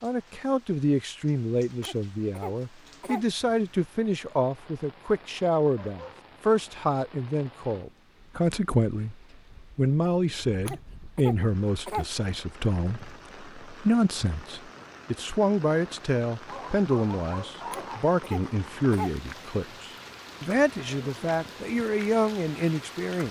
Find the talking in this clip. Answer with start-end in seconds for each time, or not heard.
0.0-9.2, 9.8-23.2.